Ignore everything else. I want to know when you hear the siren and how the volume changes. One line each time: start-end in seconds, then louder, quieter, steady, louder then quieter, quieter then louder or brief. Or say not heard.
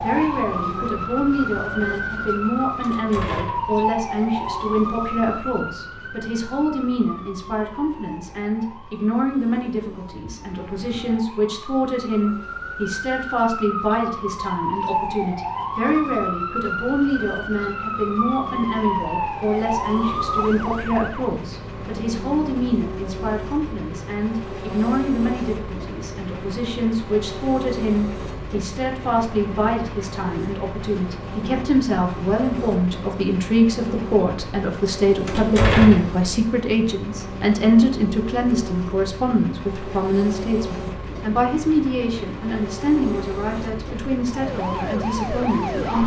0.0-21.3 quieter then louder
44.2-46.0 brief.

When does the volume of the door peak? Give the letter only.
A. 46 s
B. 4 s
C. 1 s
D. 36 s
D.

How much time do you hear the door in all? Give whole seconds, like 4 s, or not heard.
2 s.